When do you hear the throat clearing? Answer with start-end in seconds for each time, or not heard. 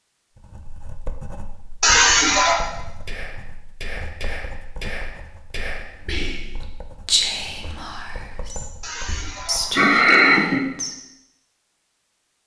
1.8-2.6, 8.8-10.6.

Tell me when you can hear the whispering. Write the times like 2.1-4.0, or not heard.
2.4-10.9.